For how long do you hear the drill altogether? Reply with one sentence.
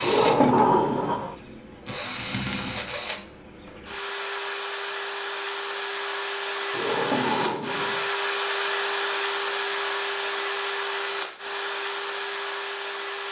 You can hear the drill for 13 seconds altogether.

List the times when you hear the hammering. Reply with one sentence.
The hammering can't be heard in this clip.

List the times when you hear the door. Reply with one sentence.
You can hear the door from 0.0 to 1.4 s and from 6.7 to 8.1 s.